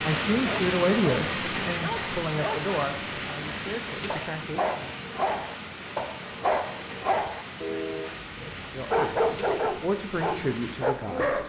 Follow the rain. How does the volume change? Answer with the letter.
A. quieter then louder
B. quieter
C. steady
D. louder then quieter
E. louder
B.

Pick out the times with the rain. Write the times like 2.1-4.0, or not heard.
0.0-11.4.